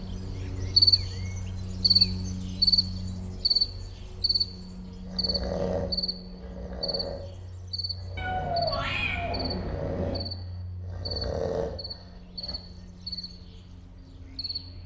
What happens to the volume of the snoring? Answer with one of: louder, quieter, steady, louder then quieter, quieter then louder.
quieter then louder.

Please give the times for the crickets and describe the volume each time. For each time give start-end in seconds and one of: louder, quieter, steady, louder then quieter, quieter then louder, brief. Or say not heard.
0.0-14.8 quieter.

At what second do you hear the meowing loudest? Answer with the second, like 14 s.
9 s.